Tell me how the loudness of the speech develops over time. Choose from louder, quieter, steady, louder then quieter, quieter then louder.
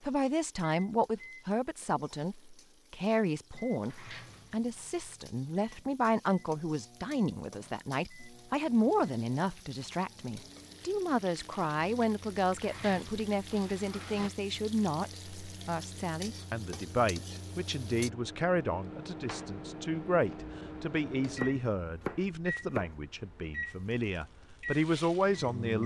steady.